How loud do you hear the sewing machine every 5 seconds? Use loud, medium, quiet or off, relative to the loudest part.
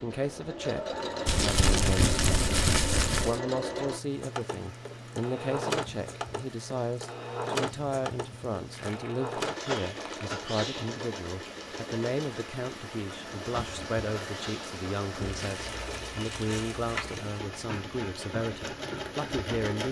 loud, loud, medium, loud.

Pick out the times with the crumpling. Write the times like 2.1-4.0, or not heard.
1.2-3.4, 8.7-10.3, 15.2-17.1.